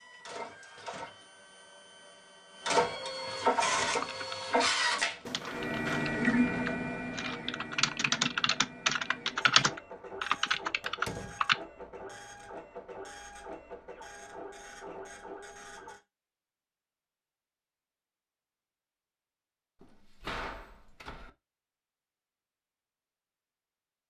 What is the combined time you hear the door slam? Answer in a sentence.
The door slam can be heard for 3 seconds in total.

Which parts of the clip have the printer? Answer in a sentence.
The printer can be heard from 0.0 to 16.0 s.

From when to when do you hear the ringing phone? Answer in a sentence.
The ringing phone can't be heard in this clip.